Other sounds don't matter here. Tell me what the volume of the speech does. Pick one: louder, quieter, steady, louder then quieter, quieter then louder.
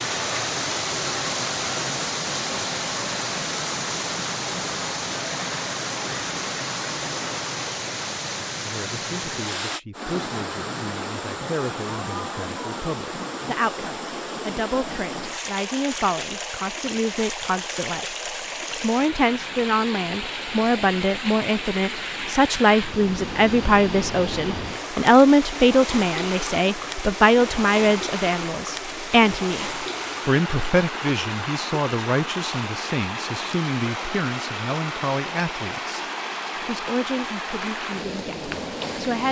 louder then quieter.